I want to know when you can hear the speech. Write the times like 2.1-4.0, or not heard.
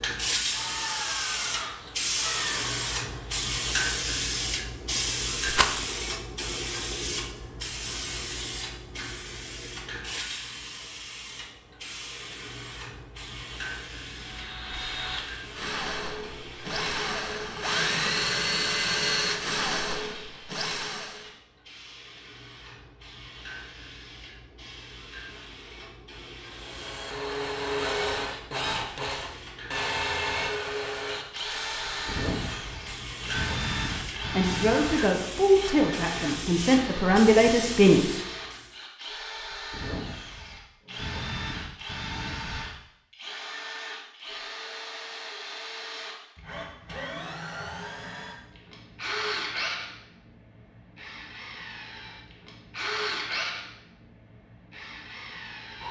34.2-38.1.